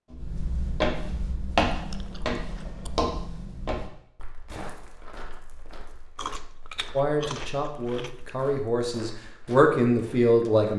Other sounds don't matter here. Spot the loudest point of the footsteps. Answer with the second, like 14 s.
2 s.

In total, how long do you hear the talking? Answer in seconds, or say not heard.
4 s.